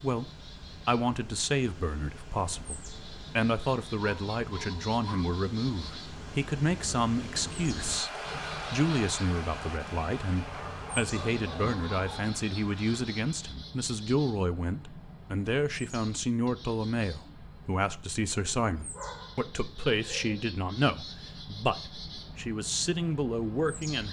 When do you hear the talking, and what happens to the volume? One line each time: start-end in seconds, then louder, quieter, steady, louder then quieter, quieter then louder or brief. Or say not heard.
0.0-24.0 steady.